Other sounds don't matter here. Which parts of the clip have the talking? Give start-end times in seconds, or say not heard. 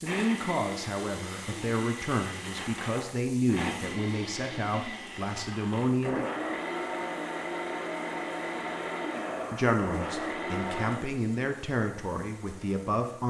0.0-6.2, 9.5-13.2.